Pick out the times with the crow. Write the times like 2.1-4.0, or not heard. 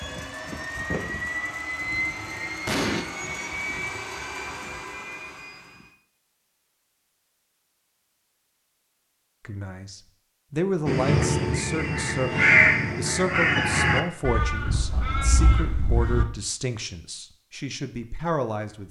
10.8-16.2.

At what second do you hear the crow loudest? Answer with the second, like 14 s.
13 s.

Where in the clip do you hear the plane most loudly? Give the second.
2 s.